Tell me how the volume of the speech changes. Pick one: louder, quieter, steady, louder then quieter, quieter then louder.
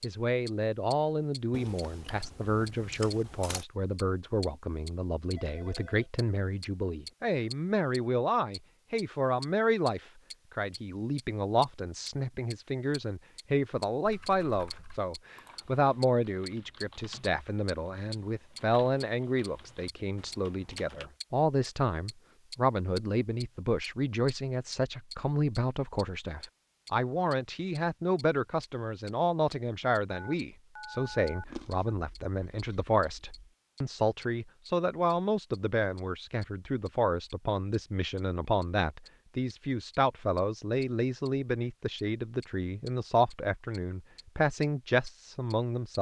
steady.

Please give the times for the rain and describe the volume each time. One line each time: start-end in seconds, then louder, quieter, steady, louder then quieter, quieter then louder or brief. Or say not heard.
not heard.